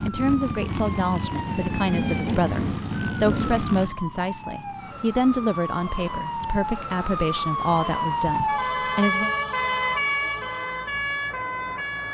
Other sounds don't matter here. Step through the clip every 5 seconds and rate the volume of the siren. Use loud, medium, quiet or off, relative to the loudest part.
medium, loud, loud.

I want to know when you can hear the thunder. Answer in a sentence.
You can hear the thunder from 0.5 to 3.6 s.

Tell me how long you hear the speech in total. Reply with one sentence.
The speech can be heard for 9 seconds in total.